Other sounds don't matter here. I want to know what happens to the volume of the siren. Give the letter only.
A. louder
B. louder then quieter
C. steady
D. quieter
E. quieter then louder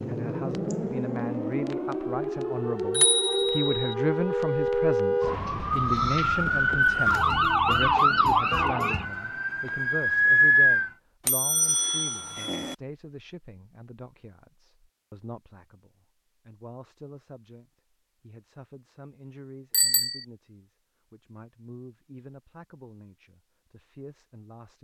A.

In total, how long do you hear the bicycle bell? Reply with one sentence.
You can hear the bicycle bell for 3 seconds altogether.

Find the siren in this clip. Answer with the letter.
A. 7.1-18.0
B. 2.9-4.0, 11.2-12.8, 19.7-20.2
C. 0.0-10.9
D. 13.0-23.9
C.